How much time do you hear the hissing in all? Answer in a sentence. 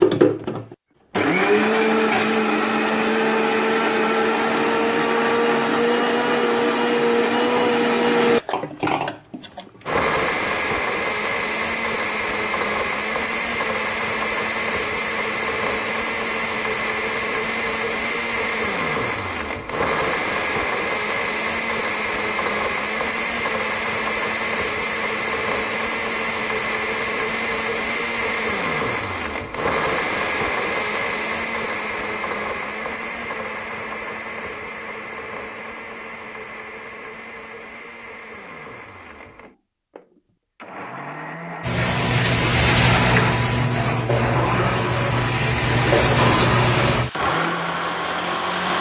The hissing can be heard for 7 seconds in total.